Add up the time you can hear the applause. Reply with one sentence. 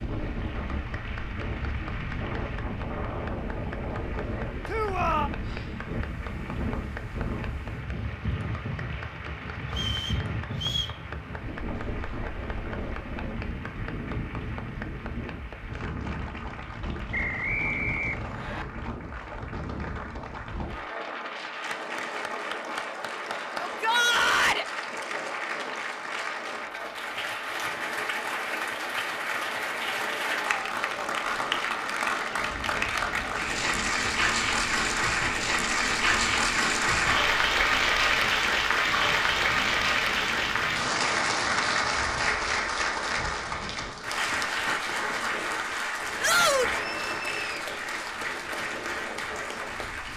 You can hear the applause for 50 seconds altogether.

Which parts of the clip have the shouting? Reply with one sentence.
The shouting can be heard from 4.7 to 5.3 s, from 23.6 to 24.6 s and from 46.2 to 46.9 s.